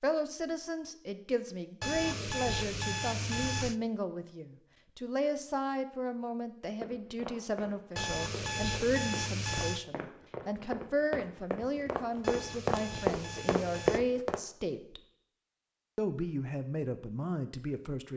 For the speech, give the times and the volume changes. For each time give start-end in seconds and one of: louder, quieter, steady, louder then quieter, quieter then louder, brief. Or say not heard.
0.0-15.0 steady
15.9-18.1 brief.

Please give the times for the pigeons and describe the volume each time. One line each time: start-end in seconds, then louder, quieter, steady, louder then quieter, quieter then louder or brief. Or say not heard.
not heard.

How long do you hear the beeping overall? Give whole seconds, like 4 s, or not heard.
6 s.